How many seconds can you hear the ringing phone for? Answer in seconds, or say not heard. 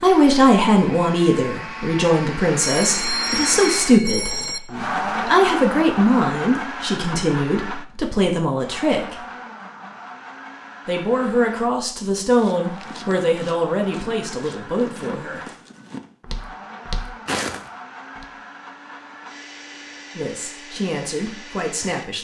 2 s.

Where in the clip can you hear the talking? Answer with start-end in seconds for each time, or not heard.
0.0-9.2, 10.8-15.4, 20.1-22.1.